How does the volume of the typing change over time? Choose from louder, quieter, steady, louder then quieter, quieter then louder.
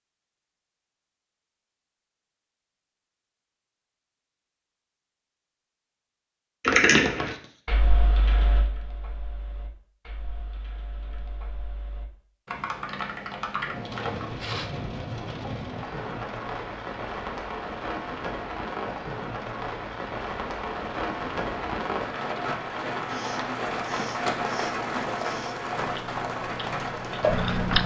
quieter then louder.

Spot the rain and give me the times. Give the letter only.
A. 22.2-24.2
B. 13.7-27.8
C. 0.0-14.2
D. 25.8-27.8
B.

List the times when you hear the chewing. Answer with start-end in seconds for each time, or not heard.
25.8-27.8.